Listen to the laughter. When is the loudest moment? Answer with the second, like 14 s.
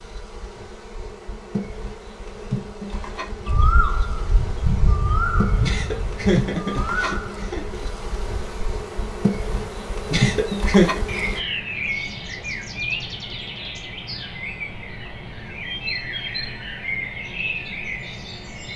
11 s.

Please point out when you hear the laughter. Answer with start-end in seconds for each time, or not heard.
5.6-7.8, 10.1-11.0.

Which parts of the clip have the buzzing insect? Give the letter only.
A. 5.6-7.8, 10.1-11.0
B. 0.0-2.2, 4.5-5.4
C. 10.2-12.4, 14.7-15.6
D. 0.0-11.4
D.